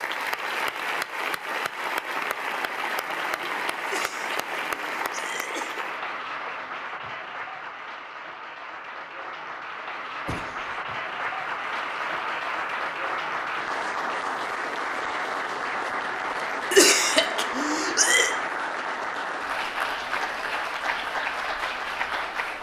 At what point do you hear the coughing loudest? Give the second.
17 s.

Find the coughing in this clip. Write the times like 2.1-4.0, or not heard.
3.9-5.8, 10.1-10.9, 16.7-18.3.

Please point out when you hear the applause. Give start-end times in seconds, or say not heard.
0.0-22.5.